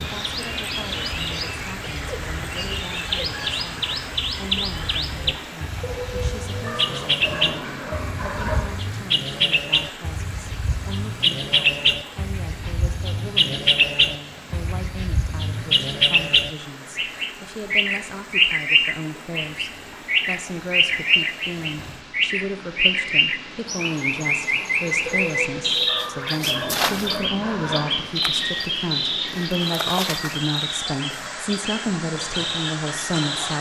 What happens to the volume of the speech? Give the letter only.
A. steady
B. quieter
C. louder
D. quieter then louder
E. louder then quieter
C.